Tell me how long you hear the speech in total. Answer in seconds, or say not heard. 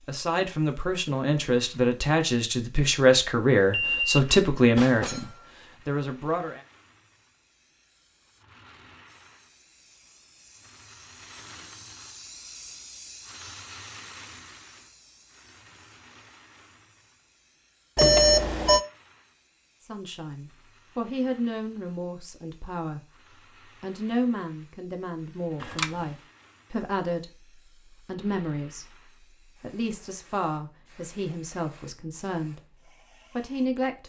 19 s.